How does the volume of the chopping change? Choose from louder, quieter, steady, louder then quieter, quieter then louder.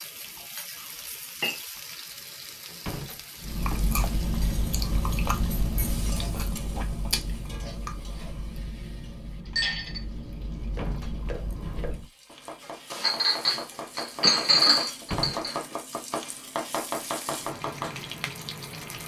louder.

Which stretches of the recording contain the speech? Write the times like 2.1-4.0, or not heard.
not heard.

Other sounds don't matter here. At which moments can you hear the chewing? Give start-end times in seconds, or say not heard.
3.4-12.1.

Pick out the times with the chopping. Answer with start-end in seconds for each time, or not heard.
10.7-18.1.